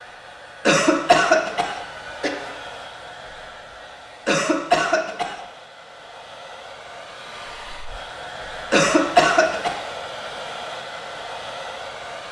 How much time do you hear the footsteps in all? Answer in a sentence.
You can't hear the footsteps here.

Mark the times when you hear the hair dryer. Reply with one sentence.
The hair dryer can be heard from 0.0 to 12.2 s.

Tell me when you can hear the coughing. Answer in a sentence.
The coughing can be heard from 0.7 to 2.3 s, from 4.2 to 5.5 s and from 8.7 to 9.8 s.